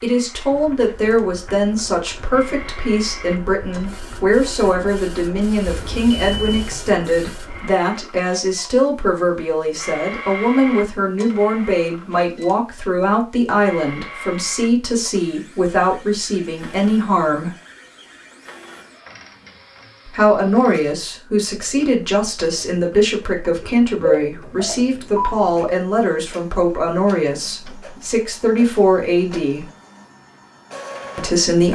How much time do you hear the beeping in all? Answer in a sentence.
The beeping can be heard for 3 seconds in total.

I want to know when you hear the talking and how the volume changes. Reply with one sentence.
The talking can be heard from 0.0 to 17.5 s, at a steady volume; from 20.1 to 29.6 s, at a steady volume; and briefly from 31.1 to 31.7 s.